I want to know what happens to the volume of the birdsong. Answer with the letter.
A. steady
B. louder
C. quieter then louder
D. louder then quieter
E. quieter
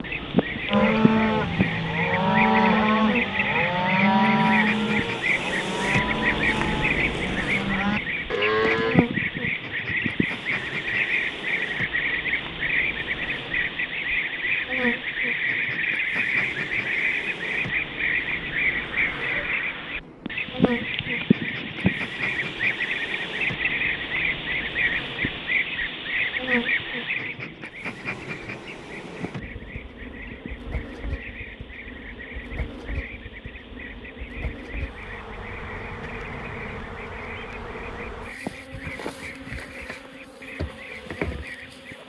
E.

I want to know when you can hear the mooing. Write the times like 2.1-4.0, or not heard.
0.7-9.0.